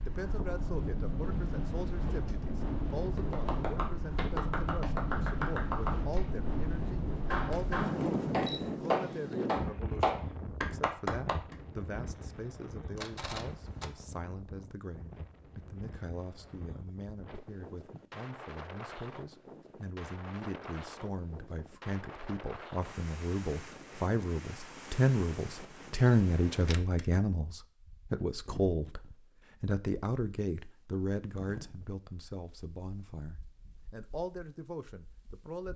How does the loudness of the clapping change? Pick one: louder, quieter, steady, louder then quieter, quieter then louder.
louder.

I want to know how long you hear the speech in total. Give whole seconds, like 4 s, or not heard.
36 s.